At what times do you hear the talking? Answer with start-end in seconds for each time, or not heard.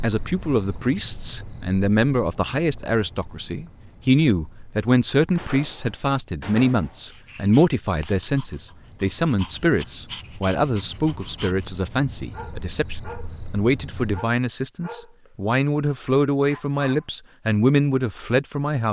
0.0-18.8.